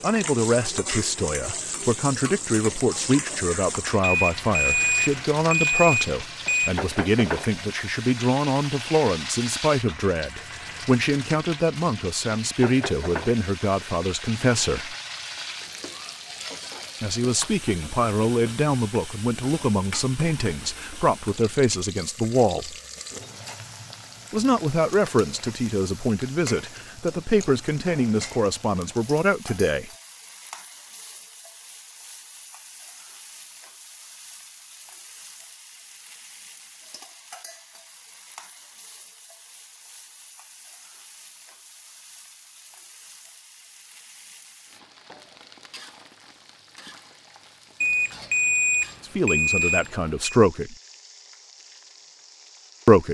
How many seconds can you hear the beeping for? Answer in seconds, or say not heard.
5 s.